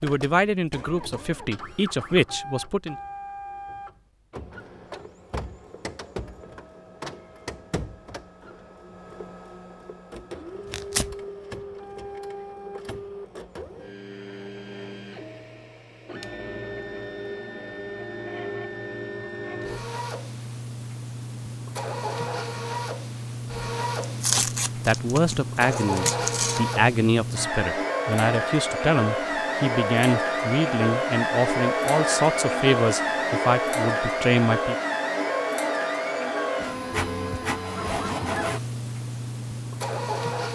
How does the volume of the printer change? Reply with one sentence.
The loudness of the printer goes up.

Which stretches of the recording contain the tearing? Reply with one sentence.
The tearing can be heard from 10.7 to 11.2 s and from 24.0 to 26.6 s.